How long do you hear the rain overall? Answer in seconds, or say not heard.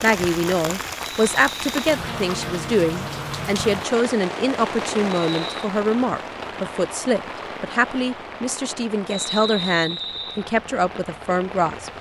12 s.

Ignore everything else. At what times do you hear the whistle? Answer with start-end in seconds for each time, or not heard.
1.0-1.8, 5.2-5.7, 9.1-10.4.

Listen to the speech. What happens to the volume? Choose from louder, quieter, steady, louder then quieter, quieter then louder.
steady.